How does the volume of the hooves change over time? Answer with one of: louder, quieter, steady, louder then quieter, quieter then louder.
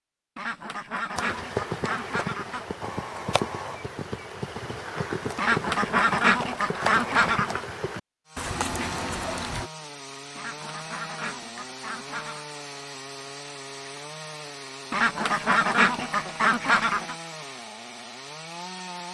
steady.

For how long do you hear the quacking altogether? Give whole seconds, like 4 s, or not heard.
9 s.